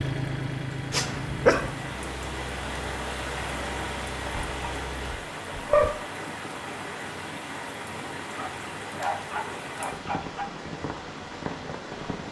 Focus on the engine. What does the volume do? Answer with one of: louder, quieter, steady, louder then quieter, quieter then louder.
quieter.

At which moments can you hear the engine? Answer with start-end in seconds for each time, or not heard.
0.0-5.2.